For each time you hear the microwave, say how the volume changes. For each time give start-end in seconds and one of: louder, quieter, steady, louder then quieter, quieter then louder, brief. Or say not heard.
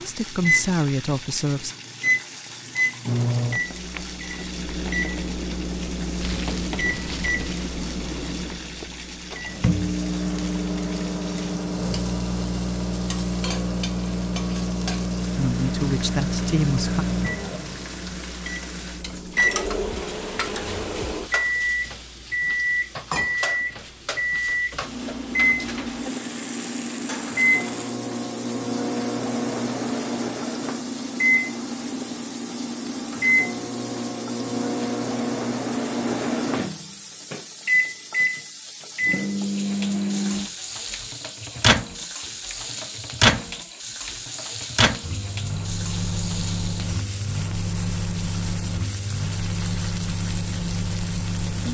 0.0-51.6 steady.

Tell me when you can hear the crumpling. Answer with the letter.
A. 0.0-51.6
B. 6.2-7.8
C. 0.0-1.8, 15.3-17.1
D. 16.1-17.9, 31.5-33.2
B.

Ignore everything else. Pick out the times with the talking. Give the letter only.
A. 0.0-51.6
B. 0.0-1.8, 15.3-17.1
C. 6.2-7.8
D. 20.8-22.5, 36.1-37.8
B.